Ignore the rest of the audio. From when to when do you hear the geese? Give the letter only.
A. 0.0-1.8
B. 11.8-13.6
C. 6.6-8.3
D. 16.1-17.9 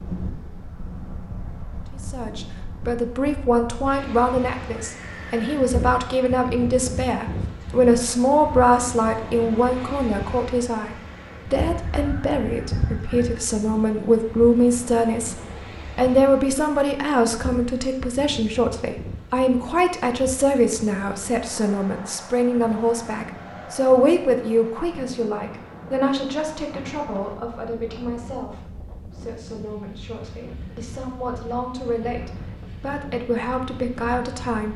B.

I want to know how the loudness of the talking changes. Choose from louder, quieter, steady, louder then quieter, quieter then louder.
quieter.